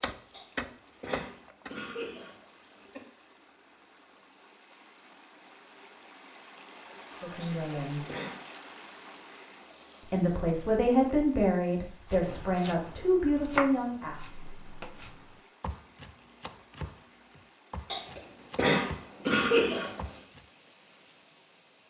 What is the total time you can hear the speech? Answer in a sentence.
You can hear the speech for 5 seconds altogether.